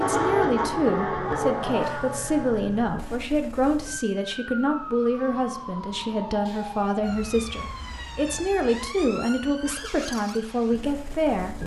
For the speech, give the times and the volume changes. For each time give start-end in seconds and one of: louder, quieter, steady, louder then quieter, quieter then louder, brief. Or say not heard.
0.0-11.6 steady.